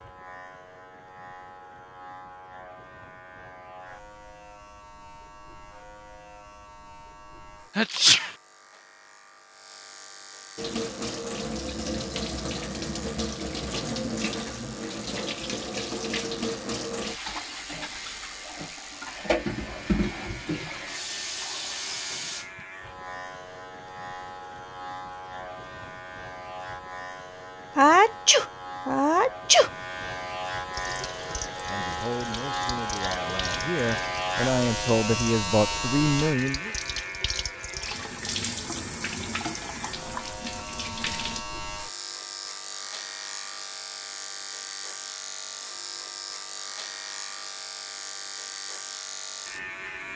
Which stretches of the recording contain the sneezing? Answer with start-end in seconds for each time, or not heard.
7.8-8.3, 27.8-29.7.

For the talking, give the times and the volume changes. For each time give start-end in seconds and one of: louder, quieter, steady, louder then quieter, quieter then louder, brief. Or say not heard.
31.7-36.7 louder.